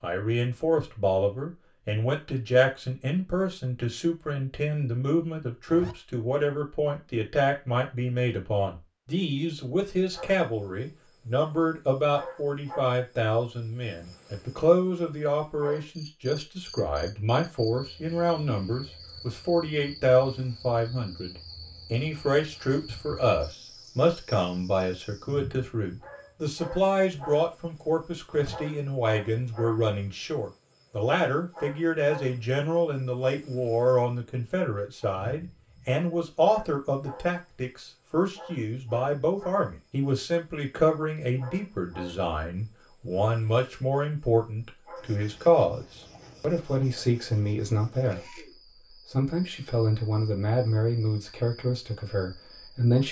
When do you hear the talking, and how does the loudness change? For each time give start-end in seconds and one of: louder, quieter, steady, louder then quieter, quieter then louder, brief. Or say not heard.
0.0-53.0 steady.